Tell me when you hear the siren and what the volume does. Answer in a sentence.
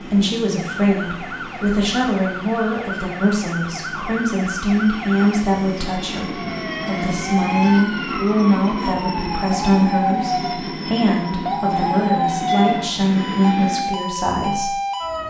The siren can be heard from 0.0 to 15.2 s, getting louder.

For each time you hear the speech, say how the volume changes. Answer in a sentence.
You can hear the speech from 0.1 to 14.8 s, at a steady volume.